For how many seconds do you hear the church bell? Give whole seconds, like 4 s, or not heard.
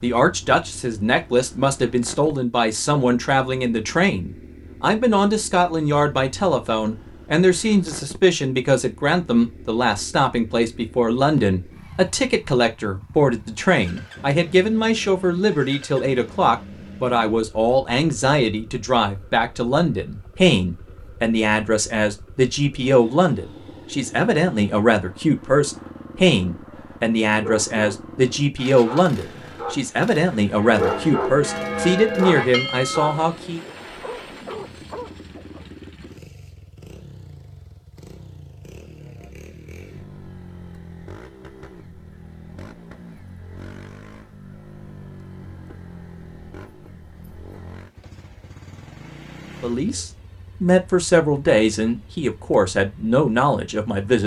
3 s.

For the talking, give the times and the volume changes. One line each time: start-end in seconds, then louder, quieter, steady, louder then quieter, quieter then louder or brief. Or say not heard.
0.0-33.6 steady
49.6-54.2 steady.